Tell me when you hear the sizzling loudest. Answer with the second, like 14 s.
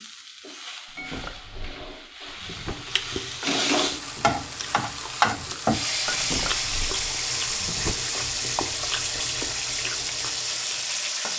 6 s.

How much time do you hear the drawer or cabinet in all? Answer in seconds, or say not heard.
4 s.